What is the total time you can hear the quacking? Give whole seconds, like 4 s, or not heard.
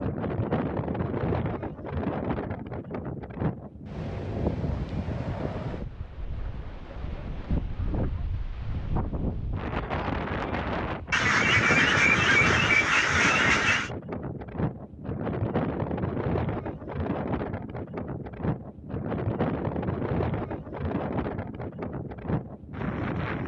3 s.